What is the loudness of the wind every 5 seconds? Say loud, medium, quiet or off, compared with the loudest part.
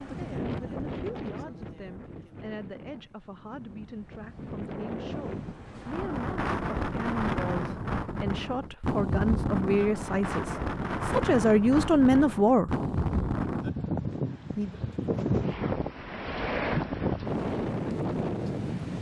medium, loud, loud, loud.